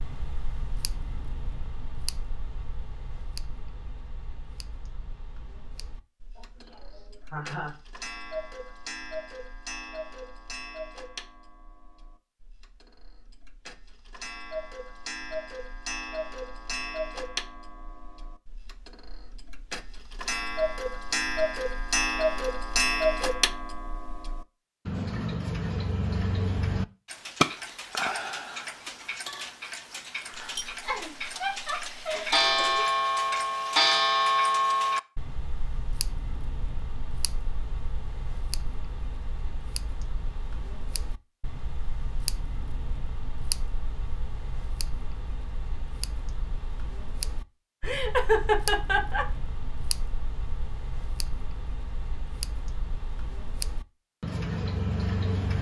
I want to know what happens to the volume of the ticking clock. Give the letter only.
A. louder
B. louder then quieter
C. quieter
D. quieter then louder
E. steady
B.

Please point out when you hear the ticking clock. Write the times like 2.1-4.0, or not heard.
0.0-55.5.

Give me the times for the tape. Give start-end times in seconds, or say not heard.
not heard.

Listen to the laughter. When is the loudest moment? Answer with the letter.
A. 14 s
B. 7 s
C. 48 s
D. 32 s
C.